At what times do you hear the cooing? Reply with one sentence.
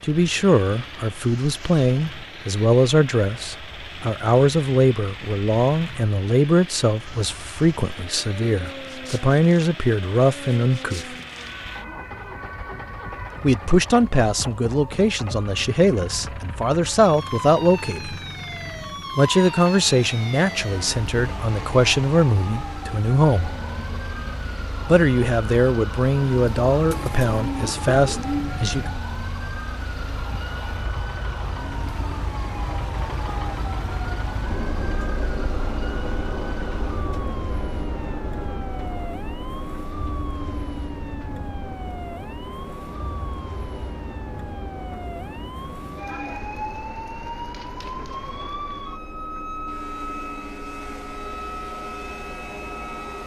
The cooing can be heard from 26.9 to 28.6 s.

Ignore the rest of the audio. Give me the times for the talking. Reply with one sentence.
You can hear the talking from 0.0 to 11.2 s, from 13.4 to 18.2 s, from 19.1 to 23.5 s and from 24.9 to 28.9 s.